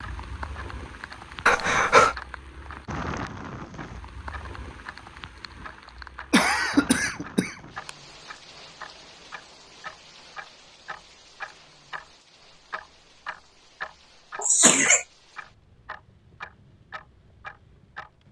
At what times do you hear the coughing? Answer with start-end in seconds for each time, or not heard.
1.4-2.1, 6.3-7.9, 14.3-15.1.